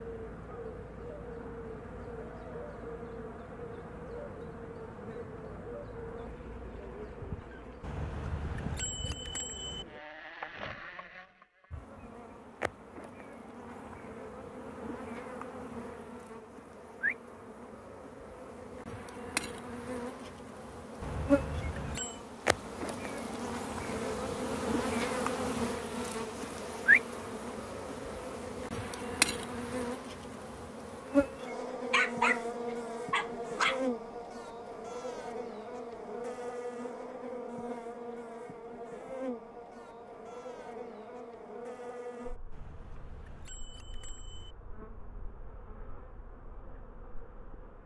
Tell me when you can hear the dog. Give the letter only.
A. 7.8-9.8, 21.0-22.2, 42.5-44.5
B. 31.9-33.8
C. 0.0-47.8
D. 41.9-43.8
B.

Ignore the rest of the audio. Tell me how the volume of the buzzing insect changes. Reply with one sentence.
The loudness of the buzzing insect goes up, then down.